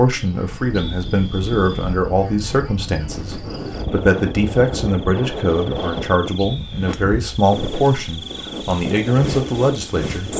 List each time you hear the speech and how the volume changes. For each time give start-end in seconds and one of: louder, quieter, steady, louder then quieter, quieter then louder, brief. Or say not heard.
0.0-10.3 steady.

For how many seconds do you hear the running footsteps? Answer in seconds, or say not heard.
not heard.